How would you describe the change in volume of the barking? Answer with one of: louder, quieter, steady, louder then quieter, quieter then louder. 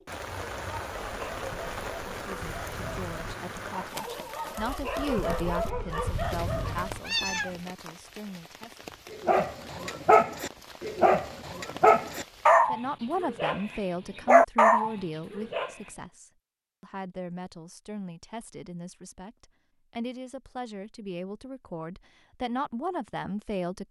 louder.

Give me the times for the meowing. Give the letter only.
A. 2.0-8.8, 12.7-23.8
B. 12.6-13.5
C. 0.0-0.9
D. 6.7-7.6
D.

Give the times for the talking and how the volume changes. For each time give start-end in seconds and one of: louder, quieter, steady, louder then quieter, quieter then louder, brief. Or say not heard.
2.0-8.8 louder then quieter
12.7-23.8 quieter then louder.